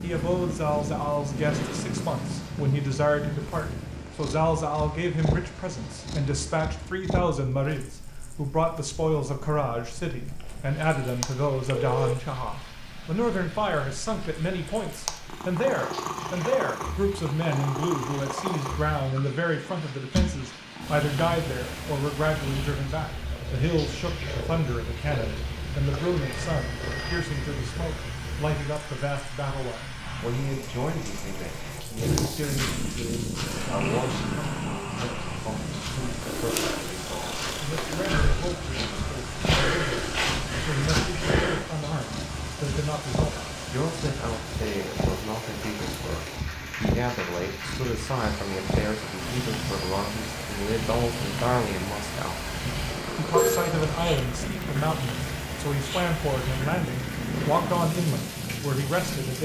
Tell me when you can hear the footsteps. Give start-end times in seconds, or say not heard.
31.9-41.6.